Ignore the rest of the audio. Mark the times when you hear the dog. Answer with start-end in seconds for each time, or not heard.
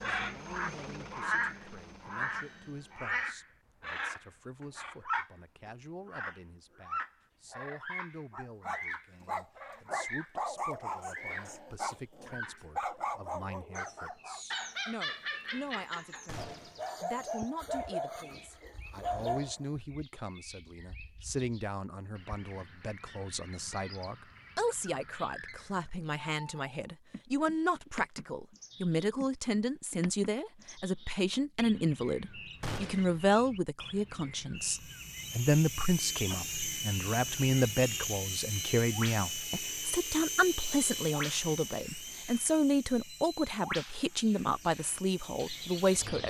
8.3-19.6.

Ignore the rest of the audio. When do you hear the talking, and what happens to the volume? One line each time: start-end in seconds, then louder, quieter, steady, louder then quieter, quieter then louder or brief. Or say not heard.
0.0-46.2 louder.